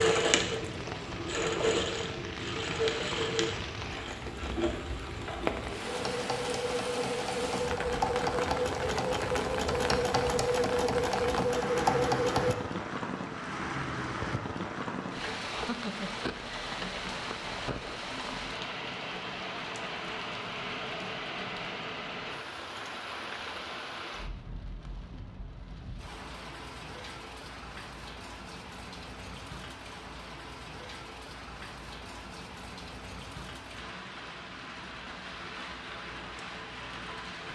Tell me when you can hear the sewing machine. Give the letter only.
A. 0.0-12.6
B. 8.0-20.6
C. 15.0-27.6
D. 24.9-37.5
A.